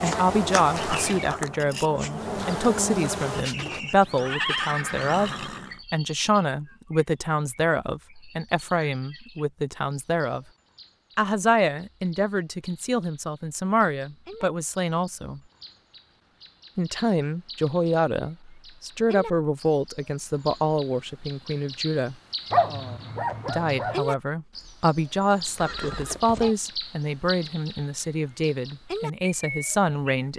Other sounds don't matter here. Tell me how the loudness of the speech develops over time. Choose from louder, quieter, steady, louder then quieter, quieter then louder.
steady.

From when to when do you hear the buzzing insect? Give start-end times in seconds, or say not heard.
0.0-3.5.